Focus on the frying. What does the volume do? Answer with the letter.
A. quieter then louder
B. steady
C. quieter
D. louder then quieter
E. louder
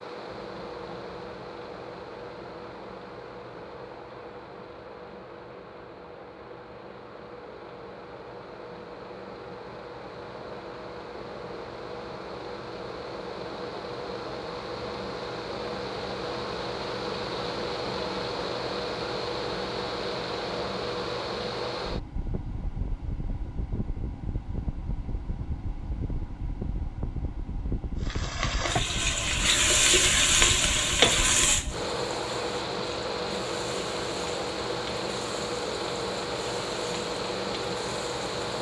C.